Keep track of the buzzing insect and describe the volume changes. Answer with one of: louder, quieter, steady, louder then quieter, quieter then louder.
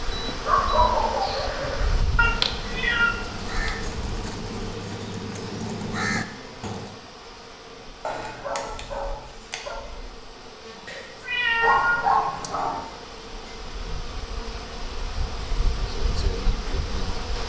quieter then louder.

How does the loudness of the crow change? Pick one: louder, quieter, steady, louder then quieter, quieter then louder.
louder.